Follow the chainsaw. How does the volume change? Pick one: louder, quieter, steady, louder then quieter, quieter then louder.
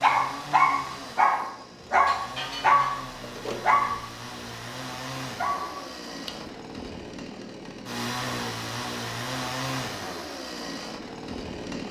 louder.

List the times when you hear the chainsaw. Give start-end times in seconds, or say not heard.
0.0-11.8.